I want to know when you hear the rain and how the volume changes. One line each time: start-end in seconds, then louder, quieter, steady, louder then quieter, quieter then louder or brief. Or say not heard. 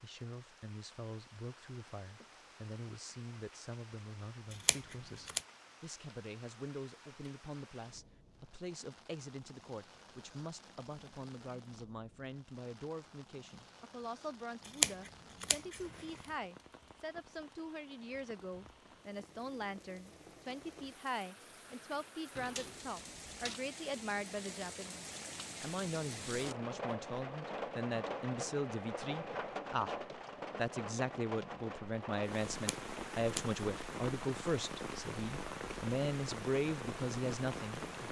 0.0-38.0 louder.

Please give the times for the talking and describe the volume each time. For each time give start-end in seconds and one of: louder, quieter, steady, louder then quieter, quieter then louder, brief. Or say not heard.
0.0-37.8 louder.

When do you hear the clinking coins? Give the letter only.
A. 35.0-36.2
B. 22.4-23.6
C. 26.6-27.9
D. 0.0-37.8
B.